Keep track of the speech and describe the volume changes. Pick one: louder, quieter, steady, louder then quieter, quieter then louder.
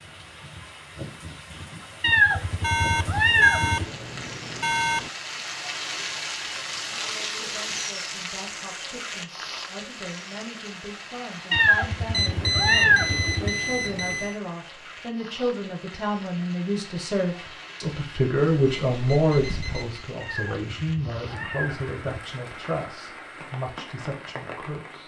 louder then quieter.